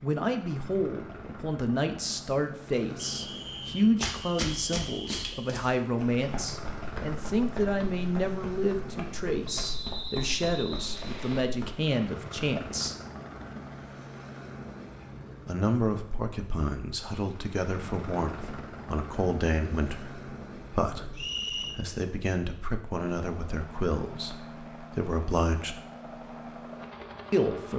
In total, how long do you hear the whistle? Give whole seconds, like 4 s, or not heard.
5 s.